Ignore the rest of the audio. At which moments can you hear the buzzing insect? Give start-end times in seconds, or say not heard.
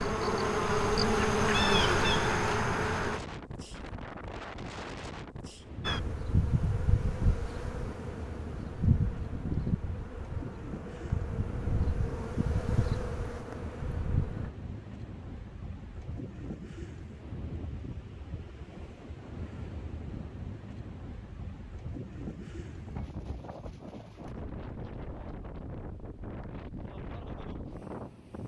0.0-3.2, 5.8-14.5.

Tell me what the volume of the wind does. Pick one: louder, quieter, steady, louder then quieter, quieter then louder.
steady.